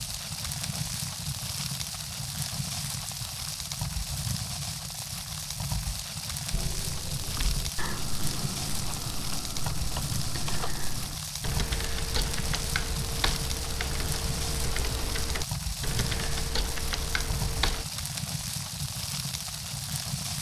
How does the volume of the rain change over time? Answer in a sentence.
The loudness of the rain stays about the same.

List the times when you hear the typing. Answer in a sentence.
You can hear the typing from 6.5 to 17.9 s.